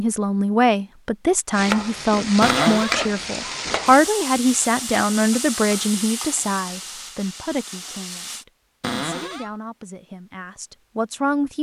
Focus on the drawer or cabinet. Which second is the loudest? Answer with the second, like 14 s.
3 s.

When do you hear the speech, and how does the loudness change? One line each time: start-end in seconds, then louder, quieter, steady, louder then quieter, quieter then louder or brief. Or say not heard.
0.0-11.5 quieter.